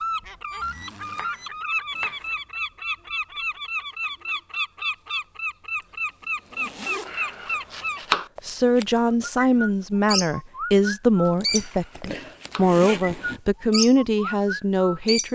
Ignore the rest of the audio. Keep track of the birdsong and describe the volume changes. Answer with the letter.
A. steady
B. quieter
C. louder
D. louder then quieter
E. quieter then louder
A.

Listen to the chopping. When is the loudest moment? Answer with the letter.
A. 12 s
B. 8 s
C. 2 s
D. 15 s
B.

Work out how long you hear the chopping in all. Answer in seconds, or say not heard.
5 s.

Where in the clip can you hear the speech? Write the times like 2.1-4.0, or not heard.
8.4-15.3.